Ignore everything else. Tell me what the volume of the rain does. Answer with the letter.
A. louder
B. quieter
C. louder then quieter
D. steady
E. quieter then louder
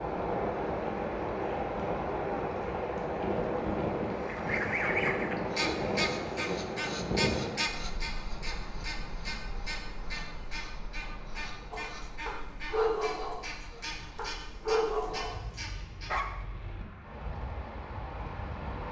E.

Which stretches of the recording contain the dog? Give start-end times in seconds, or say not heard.
11.7-16.4.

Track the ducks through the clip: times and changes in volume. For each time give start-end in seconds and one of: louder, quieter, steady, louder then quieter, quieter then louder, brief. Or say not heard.
4.1-16.2 quieter.